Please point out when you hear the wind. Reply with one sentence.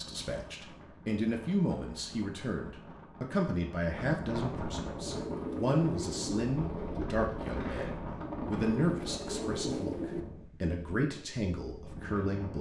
The wind can be heard from 0.0 to 12.5 s.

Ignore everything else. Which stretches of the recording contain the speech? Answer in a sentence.
The speech can be heard from 0.0 to 12.5 s.